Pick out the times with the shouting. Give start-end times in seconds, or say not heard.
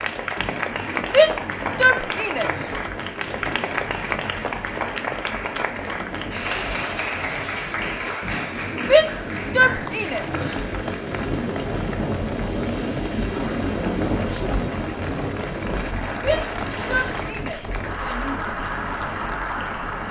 1.1-2.5, 8.8-10.2, 16.1-18.4.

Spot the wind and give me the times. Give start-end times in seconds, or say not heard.
0.0-20.0.